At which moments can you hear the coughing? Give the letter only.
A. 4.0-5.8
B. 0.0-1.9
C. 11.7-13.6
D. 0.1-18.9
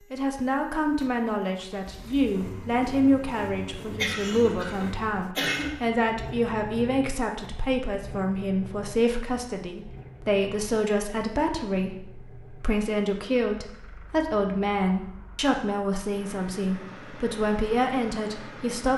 A.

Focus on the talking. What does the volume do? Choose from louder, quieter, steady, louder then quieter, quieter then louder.
steady.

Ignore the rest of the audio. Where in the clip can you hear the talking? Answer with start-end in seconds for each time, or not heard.
0.1-18.9.